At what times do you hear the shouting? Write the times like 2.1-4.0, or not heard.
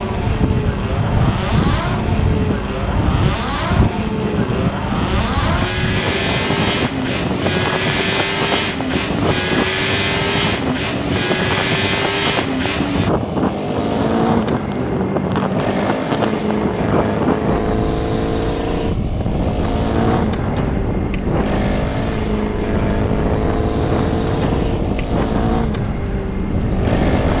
not heard.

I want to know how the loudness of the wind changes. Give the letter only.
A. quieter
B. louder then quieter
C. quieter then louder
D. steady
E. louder
D.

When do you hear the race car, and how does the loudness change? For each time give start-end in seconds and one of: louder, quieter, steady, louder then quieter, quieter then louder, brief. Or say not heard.
0.0-27.3 steady.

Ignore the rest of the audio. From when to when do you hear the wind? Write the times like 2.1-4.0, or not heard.
0.0-27.3.